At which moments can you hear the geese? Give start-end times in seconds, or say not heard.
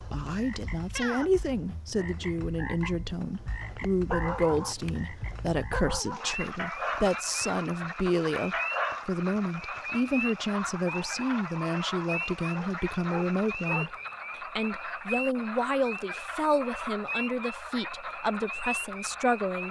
not heard.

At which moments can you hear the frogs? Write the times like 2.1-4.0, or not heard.
0.0-19.6.